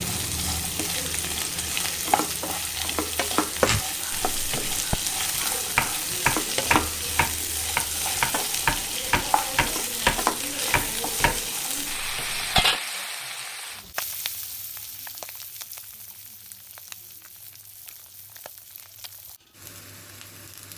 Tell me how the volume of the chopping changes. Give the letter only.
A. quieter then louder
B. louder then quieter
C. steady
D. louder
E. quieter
B.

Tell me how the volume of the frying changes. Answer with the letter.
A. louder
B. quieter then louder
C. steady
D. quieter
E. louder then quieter
D.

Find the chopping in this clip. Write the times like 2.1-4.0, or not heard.
3.6-12.8.